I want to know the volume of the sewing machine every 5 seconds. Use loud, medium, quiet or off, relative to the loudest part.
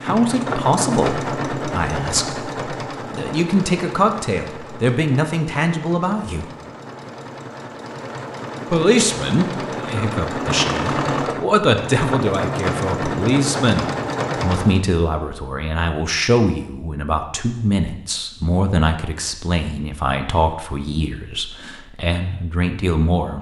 loud, medium, loud, off, off.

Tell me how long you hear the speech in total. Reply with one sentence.
You can hear the speech for 21 seconds altogether.